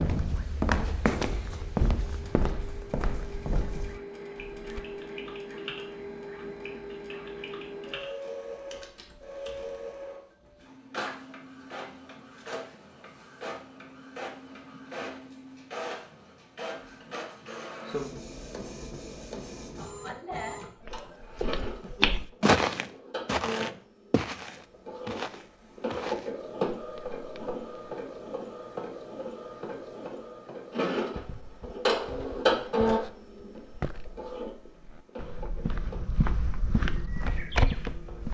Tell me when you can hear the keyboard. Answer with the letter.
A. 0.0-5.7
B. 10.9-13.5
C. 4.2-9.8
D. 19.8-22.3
C.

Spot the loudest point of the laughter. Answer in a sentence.
The loudest moment of the laughter is at 20 seconds.